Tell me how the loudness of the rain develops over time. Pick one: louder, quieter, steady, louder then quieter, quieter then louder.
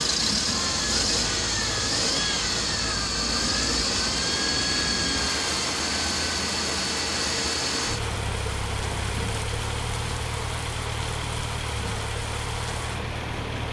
steady.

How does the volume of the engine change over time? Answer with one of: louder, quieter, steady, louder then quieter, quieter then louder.
quieter.